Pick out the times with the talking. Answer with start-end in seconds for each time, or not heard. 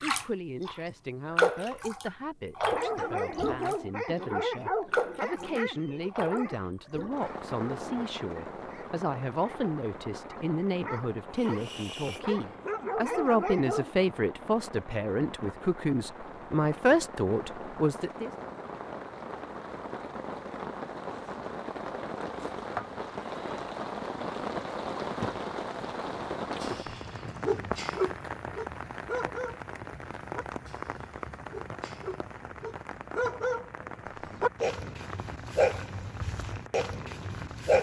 0.0-18.3.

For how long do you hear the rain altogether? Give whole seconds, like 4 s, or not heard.
38 s.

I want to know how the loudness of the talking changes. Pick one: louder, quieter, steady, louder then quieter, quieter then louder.
louder.